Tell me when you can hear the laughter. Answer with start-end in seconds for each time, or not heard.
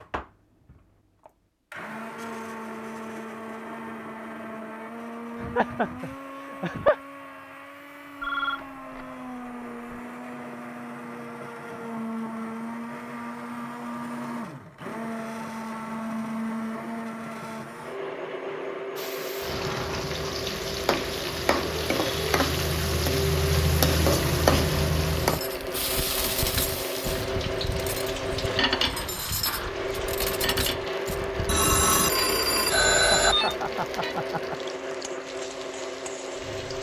5.3-7.0, 33.1-34.5.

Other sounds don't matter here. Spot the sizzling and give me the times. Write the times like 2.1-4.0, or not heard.
18.9-36.7.